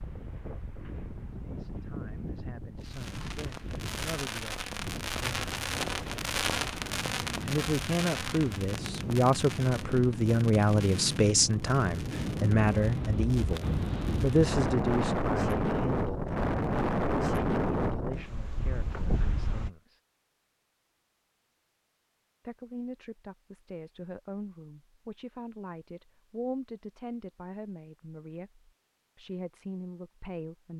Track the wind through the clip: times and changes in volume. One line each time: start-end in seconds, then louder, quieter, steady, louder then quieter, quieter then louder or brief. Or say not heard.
0.0-19.7 louder.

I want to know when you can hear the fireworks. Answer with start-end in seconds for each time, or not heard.
2.8-14.5.